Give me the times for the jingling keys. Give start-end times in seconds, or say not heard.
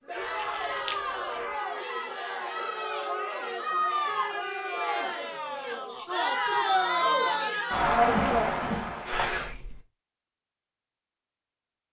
0.2-1.1, 9.2-9.8.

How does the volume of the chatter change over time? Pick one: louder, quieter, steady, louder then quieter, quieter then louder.
louder.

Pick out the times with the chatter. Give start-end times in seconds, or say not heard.
0.0-9.6.